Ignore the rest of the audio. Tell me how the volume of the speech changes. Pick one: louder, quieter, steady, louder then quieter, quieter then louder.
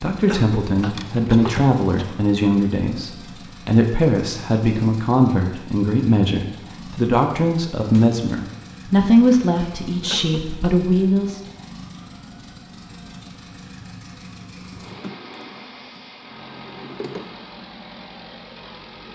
steady.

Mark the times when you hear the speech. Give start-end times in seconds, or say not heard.
0.0-11.4.